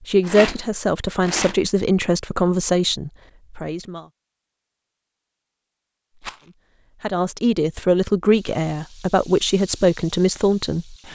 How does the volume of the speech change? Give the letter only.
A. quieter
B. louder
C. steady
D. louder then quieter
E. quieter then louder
C.